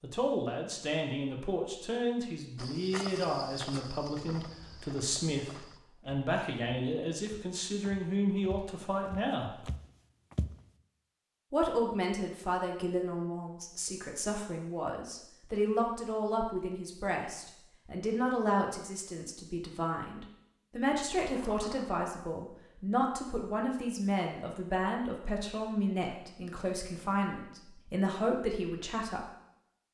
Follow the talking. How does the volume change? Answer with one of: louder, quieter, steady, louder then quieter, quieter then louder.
steady.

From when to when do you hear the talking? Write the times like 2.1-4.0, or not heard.
0.0-9.5, 11.5-29.2.